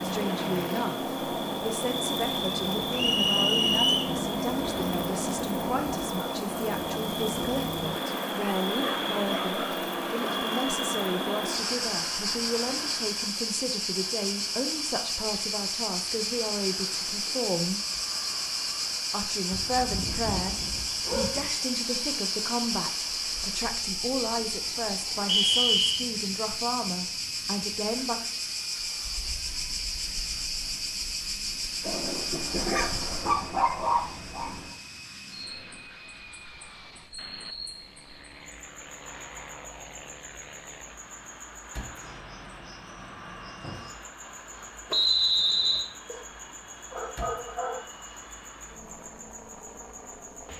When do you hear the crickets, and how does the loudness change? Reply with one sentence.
The crickets can be heard from 0.0 to 50.5 s, getting quieter.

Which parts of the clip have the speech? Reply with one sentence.
You can hear the speech from 0.0 to 1.0 s, from 1.6 to 17.8 s and from 19.1 to 28.1 s.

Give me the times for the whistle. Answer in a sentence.
You can hear the whistle from 3.0 to 4.1 s, from 25.2 to 26.1 s and from 44.9 to 45.9 s.